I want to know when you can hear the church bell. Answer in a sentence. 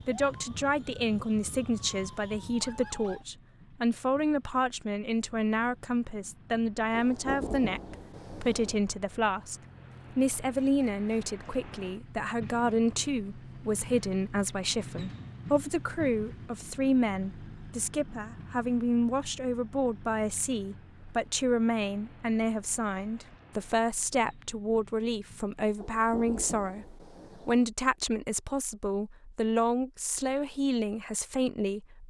You can't hear the church bell here.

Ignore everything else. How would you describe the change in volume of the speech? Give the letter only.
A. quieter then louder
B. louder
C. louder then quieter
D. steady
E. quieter
D.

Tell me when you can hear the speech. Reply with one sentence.
You can hear the speech from 0.1 to 9.6 s and from 10.2 to 32.0 s.